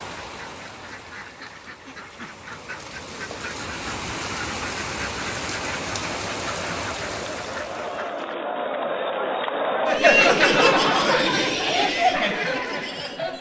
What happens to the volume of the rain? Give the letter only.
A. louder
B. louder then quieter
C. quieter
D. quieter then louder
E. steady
A.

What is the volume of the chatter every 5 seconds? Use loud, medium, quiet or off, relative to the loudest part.
off, medium, loud.